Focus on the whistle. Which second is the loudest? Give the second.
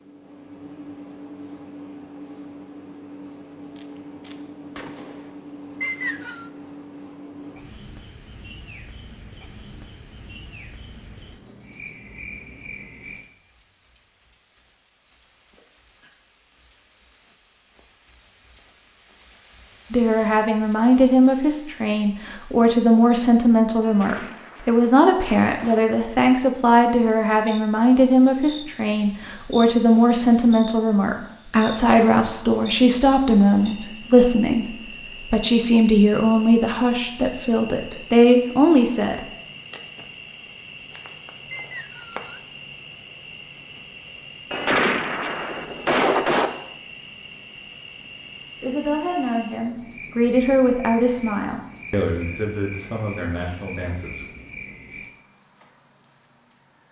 6 s.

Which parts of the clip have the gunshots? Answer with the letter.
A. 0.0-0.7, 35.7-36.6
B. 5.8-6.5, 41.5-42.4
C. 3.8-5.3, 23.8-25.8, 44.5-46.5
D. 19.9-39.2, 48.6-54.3
C.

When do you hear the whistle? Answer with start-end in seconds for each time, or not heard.
5.8-6.5, 41.5-42.4.